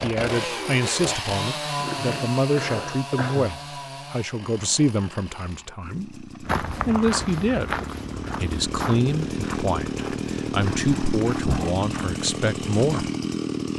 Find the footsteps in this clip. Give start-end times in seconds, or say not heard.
6.5-13.2.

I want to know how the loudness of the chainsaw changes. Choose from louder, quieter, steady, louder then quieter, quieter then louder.
quieter then louder.